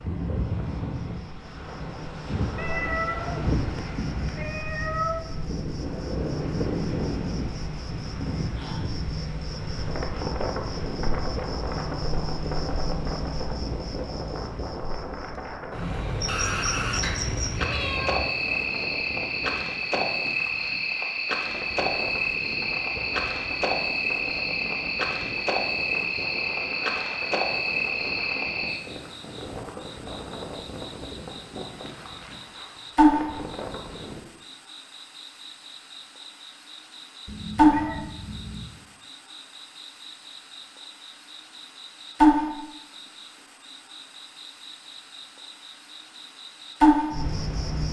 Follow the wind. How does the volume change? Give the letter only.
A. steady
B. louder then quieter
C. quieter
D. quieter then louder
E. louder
C.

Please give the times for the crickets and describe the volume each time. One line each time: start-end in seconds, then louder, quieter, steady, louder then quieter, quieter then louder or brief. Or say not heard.
0.2-47.8 louder.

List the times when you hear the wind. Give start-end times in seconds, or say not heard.
0.0-34.2.